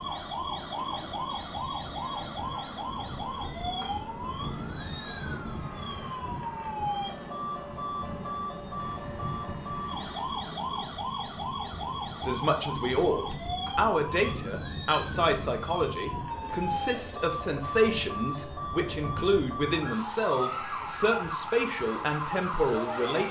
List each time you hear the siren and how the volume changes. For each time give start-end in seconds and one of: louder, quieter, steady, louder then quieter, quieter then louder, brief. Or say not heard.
0.0-23.2 steady.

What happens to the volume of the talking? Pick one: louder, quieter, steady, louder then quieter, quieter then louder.
steady.